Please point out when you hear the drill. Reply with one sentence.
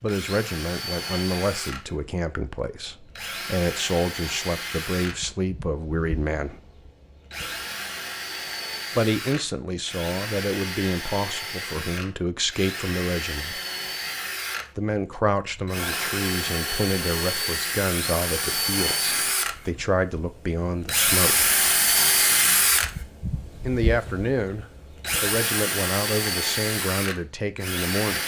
The drill can be heard from 0.1 to 28.2 s.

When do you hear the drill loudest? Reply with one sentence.
The volume of the drill peaks at 22 seconds.